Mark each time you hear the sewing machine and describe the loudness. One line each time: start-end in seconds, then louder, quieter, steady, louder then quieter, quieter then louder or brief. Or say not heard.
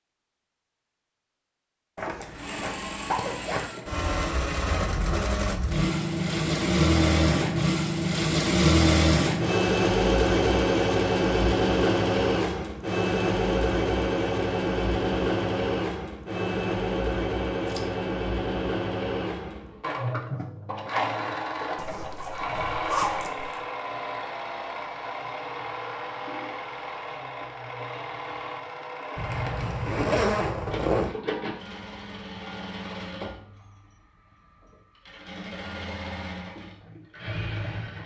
2.3-38.0 quieter.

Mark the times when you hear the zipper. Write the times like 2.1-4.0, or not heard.
1.9-3.7, 21.8-23.6, 29.1-31.1.